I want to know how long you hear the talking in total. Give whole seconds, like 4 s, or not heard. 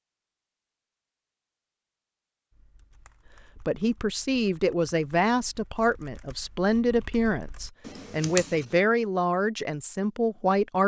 7 s.